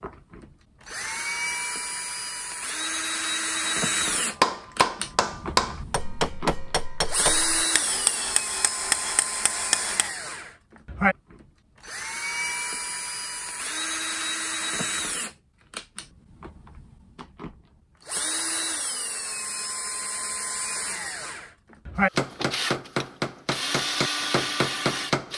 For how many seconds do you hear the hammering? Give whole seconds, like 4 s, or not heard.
9 s.